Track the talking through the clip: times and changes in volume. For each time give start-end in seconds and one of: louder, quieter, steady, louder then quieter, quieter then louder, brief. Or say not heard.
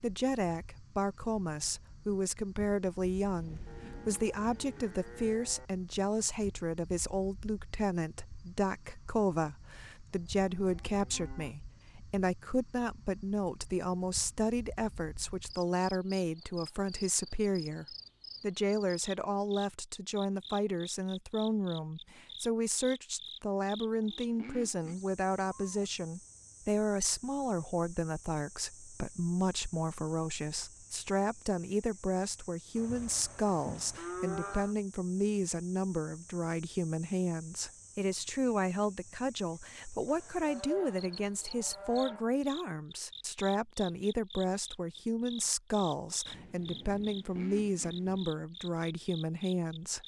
0.0-50.0 steady.